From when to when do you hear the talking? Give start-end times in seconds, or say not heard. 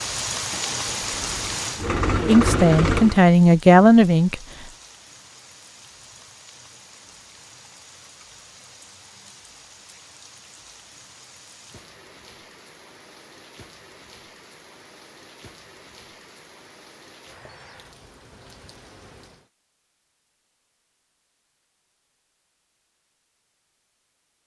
2.2-4.4.